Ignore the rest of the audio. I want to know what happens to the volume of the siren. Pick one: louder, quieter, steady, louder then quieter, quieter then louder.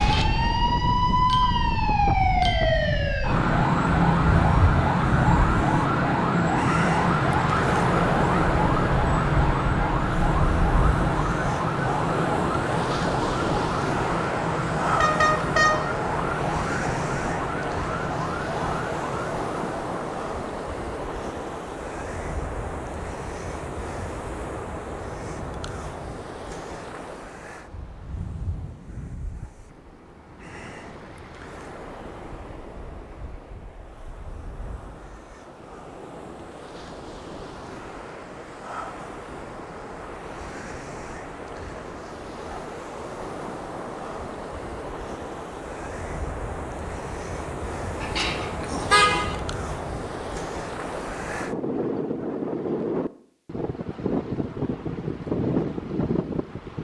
quieter.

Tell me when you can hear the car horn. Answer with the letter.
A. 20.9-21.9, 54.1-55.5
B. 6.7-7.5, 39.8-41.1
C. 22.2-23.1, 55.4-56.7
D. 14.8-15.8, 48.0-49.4
D.